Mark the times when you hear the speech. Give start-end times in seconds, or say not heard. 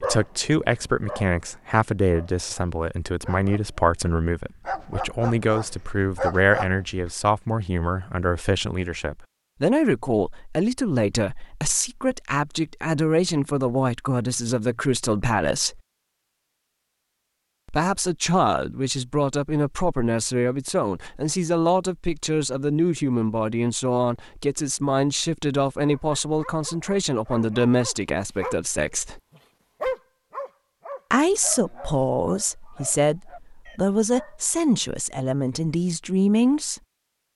0.0-15.8, 17.6-29.2, 31.1-36.8.